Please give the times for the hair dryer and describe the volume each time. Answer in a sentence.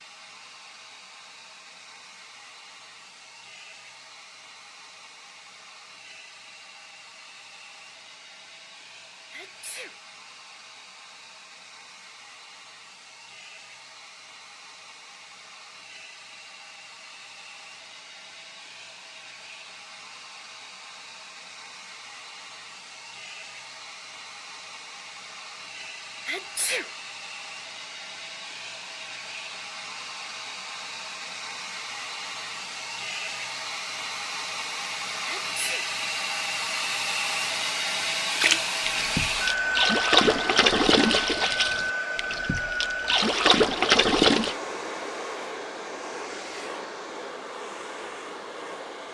You can hear the hair dryer from 0.0 to 49.0 s, getting louder.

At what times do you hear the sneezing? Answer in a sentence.
The sneezing can be heard from 9.3 to 9.9 s, from 26.2 to 26.9 s and from 35.2 to 35.9 s.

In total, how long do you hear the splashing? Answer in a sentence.
The splashing can be heard for 6 seconds in total.